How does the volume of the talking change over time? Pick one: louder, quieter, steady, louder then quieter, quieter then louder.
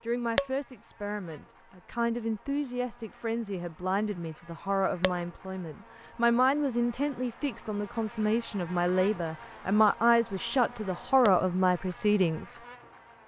louder.